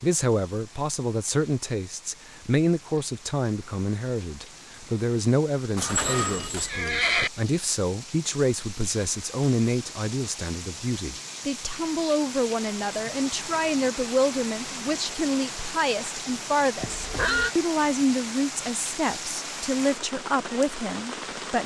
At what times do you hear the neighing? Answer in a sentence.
The neighing can be heard from 5.8 to 7.3 s and from 16.8 to 17.6 s.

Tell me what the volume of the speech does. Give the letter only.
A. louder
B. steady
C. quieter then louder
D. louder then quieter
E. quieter
B.